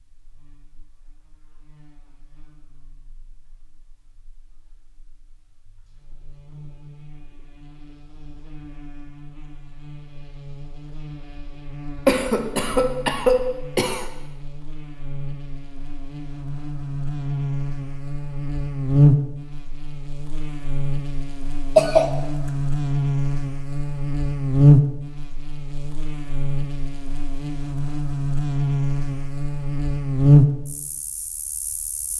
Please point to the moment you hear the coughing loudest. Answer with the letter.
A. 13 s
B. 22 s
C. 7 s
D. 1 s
B.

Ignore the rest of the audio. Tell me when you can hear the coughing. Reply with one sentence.
The coughing can be heard from 12.1 to 14.1 s and from 21.8 to 22.5 s.